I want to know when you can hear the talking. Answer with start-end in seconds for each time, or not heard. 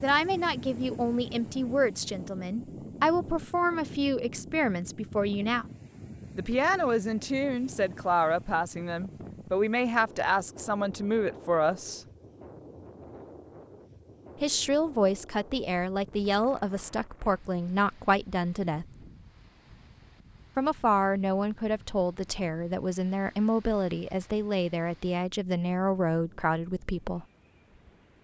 0.0-5.7, 6.3-12.0, 14.4-18.9, 20.6-27.2.